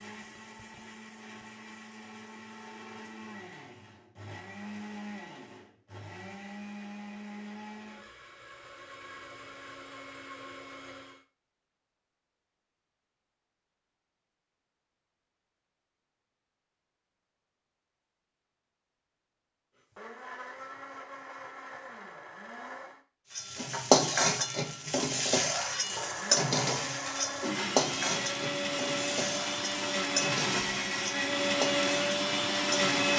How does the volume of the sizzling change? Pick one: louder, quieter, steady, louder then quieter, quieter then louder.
quieter.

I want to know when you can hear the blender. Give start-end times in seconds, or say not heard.
0.0-11.2, 19.8-23.0, 25.8-33.1.